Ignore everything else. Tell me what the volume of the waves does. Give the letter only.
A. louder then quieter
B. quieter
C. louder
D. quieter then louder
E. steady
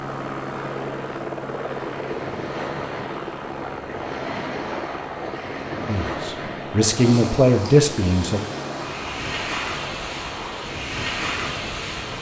C.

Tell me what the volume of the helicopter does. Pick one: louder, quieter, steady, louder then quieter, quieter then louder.
quieter.